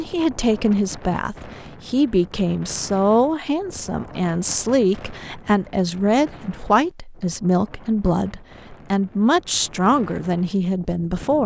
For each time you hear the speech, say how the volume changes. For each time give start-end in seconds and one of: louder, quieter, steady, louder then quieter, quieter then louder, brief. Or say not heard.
0.0-11.4 steady.